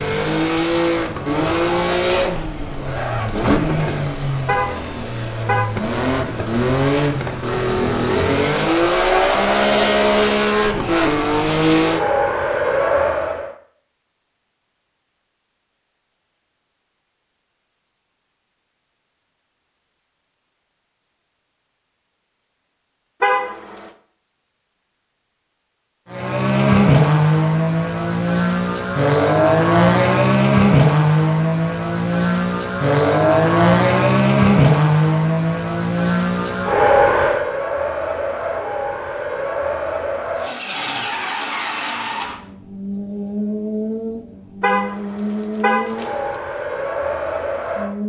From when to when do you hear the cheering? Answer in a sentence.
You can't hear the cheering here.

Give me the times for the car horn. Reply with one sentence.
You can hear the car horn from 4.5 to 5.7 s, from 23.2 to 23.9 s and from 44.6 to 46.4 s.